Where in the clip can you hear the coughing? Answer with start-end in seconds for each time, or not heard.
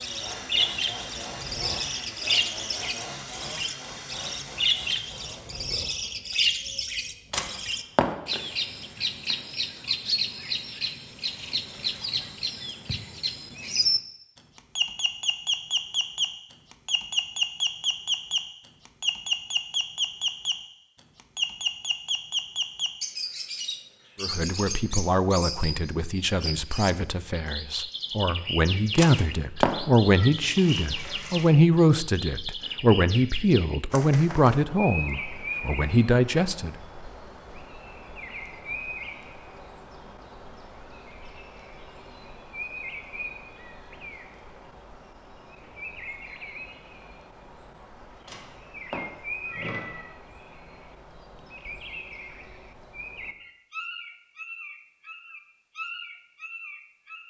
not heard.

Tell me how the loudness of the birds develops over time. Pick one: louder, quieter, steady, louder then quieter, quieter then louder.
quieter.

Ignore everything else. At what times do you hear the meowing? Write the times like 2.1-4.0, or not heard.
7.3-8.1, 28.9-30.3, 48.2-50.1.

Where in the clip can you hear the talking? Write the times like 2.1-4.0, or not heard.
24.2-36.8.